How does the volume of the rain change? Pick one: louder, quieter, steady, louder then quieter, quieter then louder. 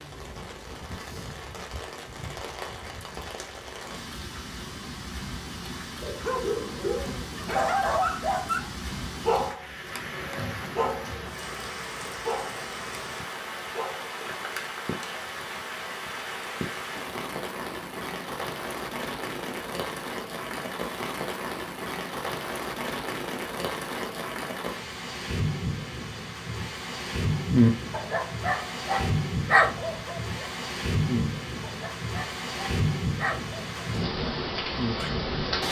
louder.